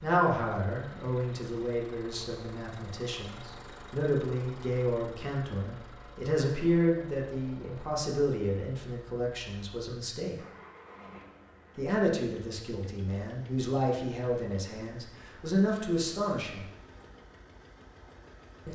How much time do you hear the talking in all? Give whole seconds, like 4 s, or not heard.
15 s.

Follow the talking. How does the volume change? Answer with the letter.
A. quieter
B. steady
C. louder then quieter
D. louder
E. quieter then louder
B.